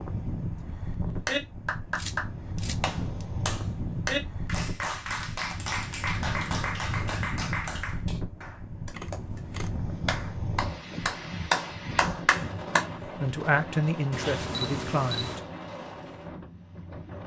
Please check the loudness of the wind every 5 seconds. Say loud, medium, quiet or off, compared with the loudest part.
loud, loud, loud, medium.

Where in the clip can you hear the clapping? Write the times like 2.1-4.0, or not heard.
1.2-12.8.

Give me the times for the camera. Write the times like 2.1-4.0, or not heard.
1.9-3.2, 8.9-9.7, 14.1-15.4.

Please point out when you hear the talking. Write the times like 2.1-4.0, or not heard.
13.2-15.4.